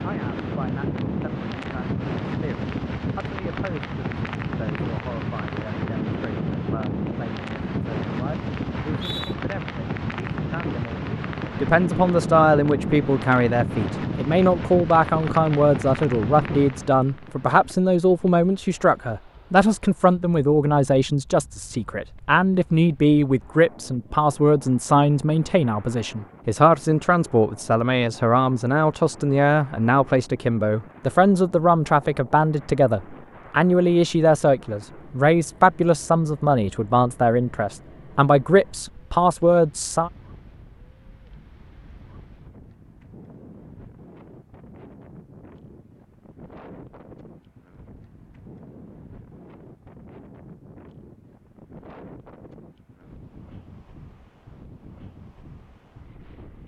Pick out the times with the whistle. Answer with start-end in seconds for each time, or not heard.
8.7-9.3.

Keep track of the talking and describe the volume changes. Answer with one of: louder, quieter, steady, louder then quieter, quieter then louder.
louder.